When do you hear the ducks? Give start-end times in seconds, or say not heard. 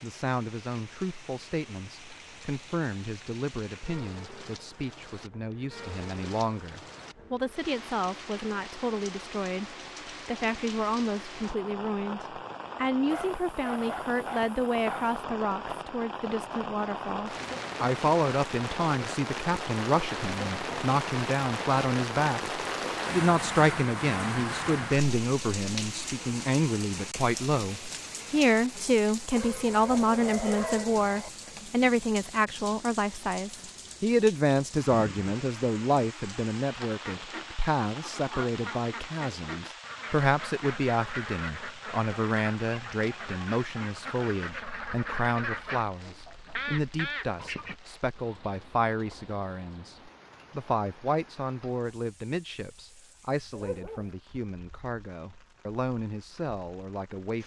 36.8-47.8.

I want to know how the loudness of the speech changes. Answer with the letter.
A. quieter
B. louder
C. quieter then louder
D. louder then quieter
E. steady
D.